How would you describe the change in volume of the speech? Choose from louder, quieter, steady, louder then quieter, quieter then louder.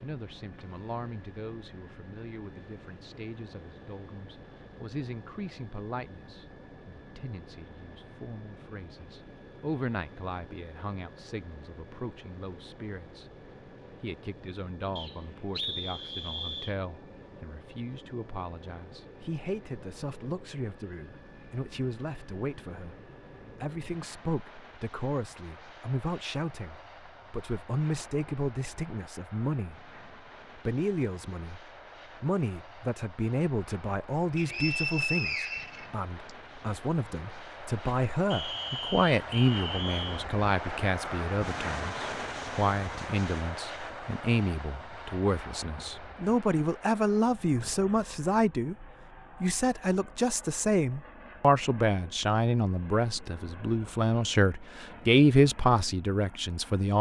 louder.